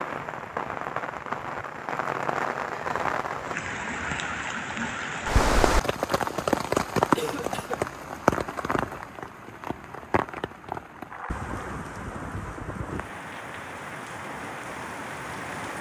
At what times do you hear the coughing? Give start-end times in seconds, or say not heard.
7.2-7.8.